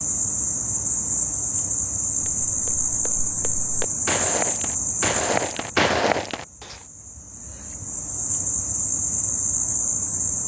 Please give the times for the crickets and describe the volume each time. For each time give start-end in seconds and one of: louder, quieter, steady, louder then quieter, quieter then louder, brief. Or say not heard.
0.0-10.4 quieter then louder.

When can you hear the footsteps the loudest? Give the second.
6 s.